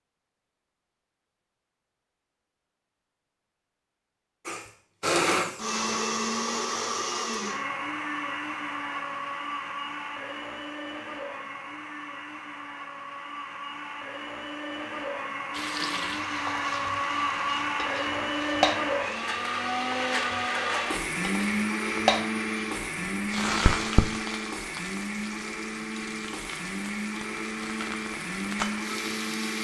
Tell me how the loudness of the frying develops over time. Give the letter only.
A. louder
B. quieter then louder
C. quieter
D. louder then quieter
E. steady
D.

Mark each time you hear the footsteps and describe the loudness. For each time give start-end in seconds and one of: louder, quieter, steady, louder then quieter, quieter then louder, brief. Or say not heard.
not heard.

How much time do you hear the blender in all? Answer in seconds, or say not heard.
25 s.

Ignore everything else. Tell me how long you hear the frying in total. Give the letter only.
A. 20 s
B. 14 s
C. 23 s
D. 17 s
B.